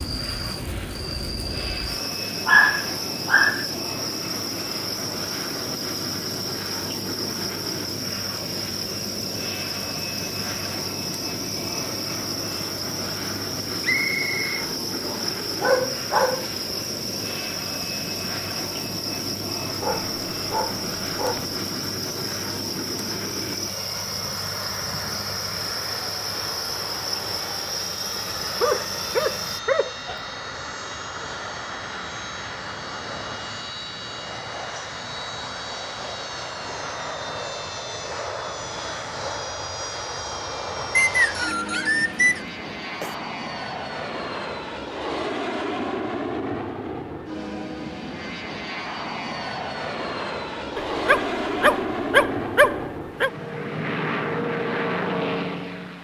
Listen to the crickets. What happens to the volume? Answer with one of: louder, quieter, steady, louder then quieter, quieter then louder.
steady.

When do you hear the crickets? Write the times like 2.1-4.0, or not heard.
0.0-29.6.